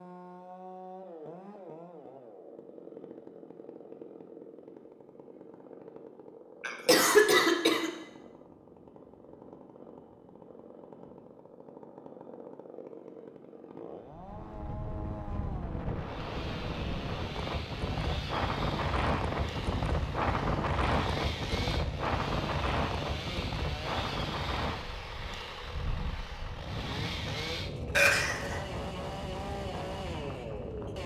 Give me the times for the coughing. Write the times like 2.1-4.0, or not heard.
6.6-7.9, 27.9-28.6.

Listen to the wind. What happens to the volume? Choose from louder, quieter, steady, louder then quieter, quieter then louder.
louder then quieter.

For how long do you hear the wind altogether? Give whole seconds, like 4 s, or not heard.
17 s.